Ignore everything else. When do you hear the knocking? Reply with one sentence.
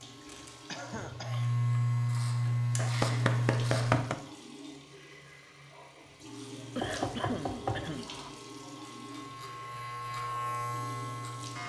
You can hear the knocking from 2.8 to 4.2 s and from 6.8 to 8.3 s.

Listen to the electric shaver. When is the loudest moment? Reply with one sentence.
The loudest moment of the electric shaver is at 2 seconds.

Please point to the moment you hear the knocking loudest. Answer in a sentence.
The volume of the knocking peaks at 4 seconds.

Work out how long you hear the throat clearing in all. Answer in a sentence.
The throat clearing can be heard for 2 seconds in total.